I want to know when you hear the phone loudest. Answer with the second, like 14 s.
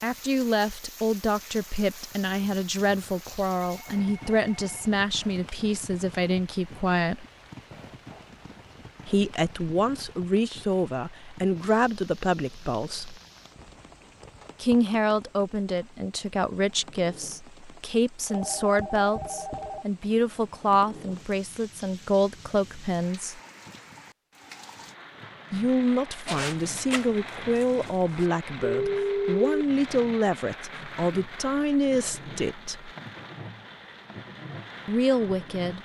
29 s.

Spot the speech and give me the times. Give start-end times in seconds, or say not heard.
0.0-7.2, 9.1-13.2, 14.6-23.4, 25.5-32.9, 34.9-35.8.